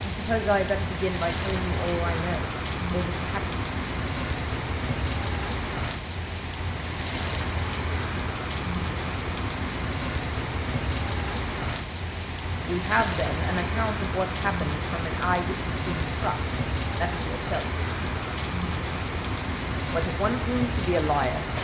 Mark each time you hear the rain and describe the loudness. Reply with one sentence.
The rain can be heard from 0.0 to 21.5 s, at a steady volume.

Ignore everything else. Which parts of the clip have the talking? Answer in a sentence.
You can hear the talking from 0.0 to 3.5 s, from 12.7 to 17.6 s and from 19.9 to 21.4 s.